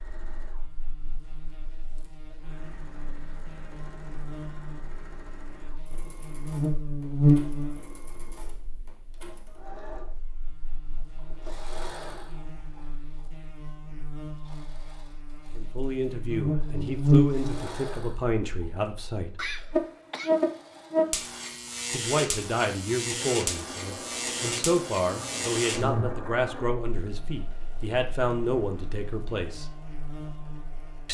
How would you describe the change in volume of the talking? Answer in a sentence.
The loudness of the talking stays about the same.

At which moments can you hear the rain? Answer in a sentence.
You can't hear the rain here.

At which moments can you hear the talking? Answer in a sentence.
The talking can be heard from 15.6 to 19.4 s and from 21.9 to 29.8 s.